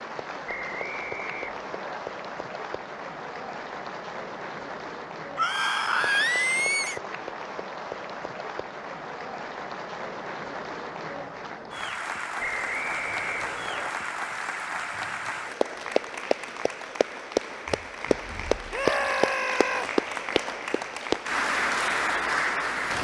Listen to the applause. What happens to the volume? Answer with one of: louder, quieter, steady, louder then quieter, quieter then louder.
louder.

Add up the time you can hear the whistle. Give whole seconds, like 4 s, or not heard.
3 s.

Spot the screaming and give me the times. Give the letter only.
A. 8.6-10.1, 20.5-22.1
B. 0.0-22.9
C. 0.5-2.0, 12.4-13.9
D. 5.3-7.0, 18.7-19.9
D.